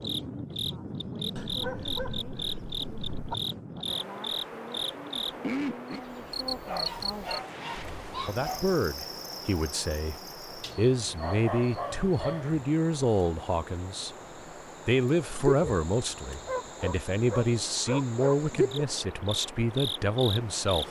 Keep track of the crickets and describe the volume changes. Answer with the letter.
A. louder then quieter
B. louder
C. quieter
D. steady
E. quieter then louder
E.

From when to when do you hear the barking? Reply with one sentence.
You can hear the barking from 1.4 to 3.4 s, from 6.6 to 8.8 s, from 10.6 to 12.6 s and from 16.4 to 18.4 s.